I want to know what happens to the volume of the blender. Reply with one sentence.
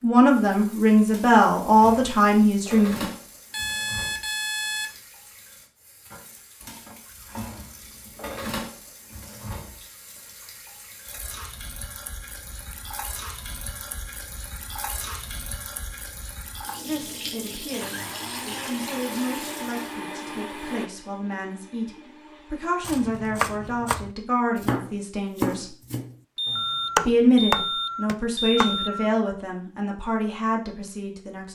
The loudness of the blender goes down.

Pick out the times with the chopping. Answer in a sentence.
The chopping can be heard from 22.8 to 28.8 s.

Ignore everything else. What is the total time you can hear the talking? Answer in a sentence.
You can hear the talking for 16 seconds altogether.